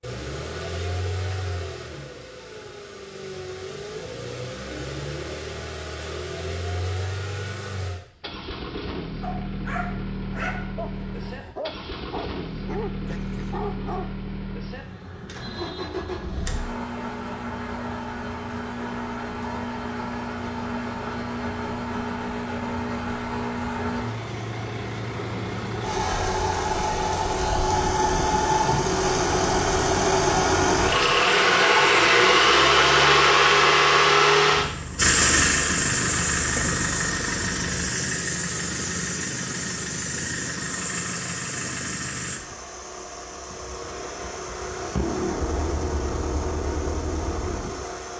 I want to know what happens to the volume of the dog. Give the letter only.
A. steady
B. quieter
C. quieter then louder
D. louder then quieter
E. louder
A.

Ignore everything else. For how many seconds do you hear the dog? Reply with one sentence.
You can hear the dog for 5 seconds altogether.